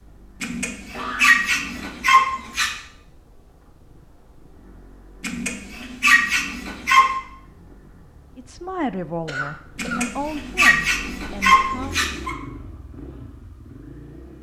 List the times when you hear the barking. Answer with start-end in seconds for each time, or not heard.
0.4-2.7, 5.2-7.2, 9.8-12.3.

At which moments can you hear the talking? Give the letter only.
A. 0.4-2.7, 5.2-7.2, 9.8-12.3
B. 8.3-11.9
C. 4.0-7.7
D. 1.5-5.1
B.